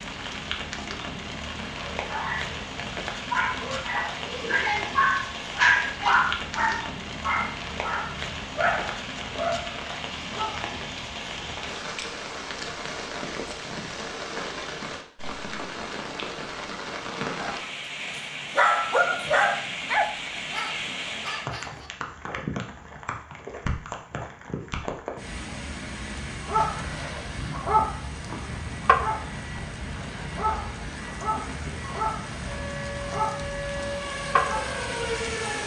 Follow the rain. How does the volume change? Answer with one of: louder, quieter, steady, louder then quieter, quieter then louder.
steady.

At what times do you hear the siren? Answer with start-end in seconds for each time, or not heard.
32.5-35.6.